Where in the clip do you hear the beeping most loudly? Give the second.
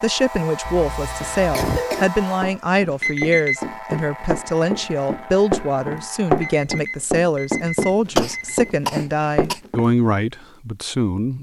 3 s.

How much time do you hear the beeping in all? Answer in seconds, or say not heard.
3 s.